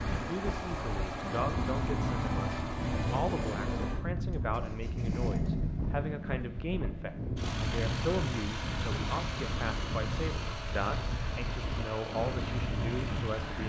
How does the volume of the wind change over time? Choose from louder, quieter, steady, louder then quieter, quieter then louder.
steady.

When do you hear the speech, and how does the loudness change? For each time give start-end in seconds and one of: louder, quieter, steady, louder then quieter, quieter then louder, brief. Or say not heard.
0.0-13.6 steady.